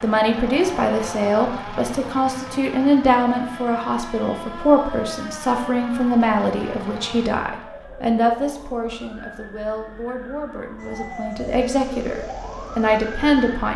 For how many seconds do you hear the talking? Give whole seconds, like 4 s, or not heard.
14 s.